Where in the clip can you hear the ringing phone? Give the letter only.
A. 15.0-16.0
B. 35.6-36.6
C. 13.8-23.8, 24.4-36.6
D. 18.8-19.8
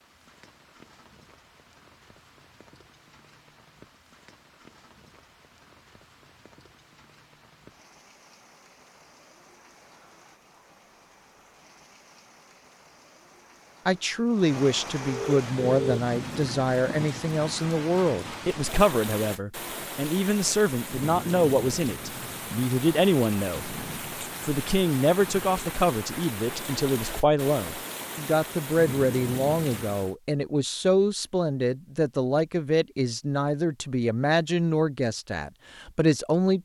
A.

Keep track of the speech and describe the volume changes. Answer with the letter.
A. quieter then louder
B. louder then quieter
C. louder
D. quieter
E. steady
E.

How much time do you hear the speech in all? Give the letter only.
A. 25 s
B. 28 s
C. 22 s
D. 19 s
C.